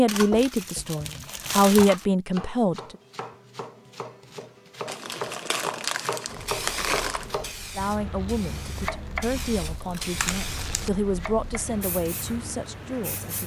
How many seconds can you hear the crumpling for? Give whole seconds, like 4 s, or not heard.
6 s.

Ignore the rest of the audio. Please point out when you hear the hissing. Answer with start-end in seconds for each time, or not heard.
6.2-13.4.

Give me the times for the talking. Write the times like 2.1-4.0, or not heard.
0.0-3.0, 7.8-13.4.